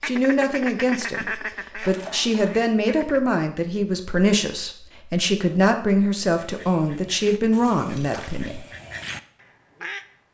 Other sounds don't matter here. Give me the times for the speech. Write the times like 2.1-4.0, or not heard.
0.0-8.6.